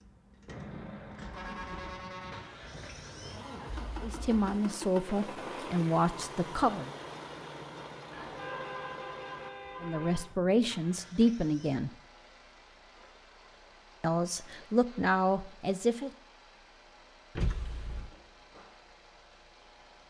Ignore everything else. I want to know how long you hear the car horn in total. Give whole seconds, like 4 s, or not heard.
5 s.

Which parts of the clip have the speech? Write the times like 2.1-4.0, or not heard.
4.0-6.9, 9.8-11.9, 14.0-16.1.